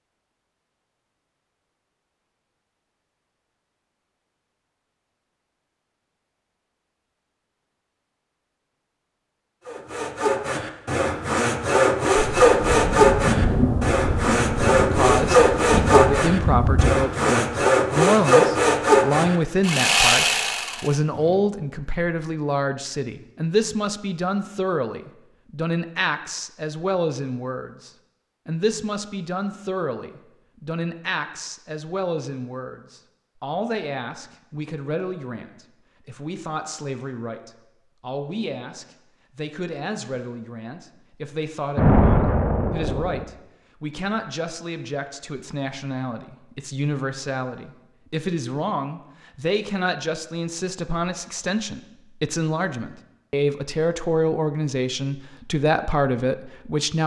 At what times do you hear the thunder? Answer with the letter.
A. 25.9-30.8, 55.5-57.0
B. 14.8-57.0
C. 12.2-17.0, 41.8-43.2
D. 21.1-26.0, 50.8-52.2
C.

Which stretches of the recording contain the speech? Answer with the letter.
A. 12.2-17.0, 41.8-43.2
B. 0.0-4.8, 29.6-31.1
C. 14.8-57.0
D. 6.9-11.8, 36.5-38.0
C.